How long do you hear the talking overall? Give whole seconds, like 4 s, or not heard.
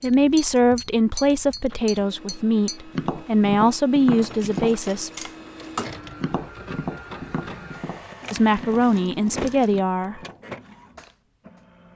7 s.